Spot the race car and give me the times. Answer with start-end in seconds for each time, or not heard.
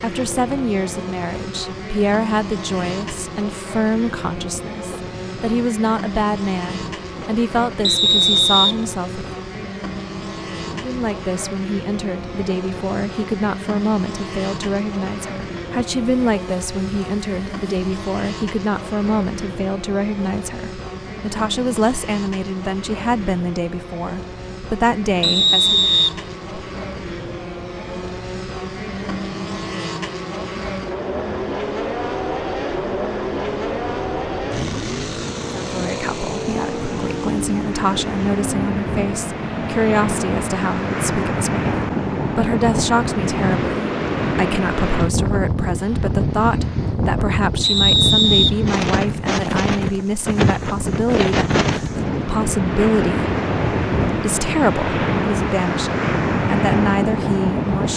0.0-40.6.